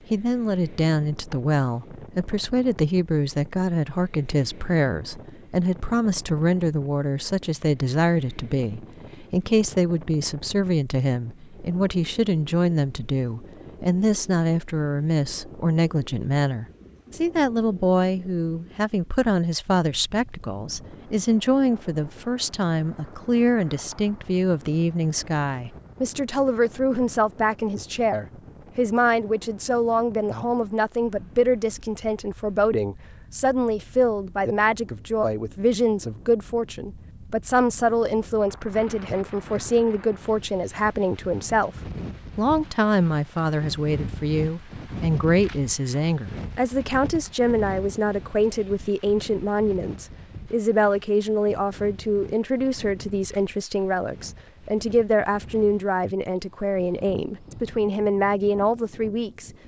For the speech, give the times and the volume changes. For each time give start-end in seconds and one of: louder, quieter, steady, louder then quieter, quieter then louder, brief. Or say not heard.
0.1-59.5 steady.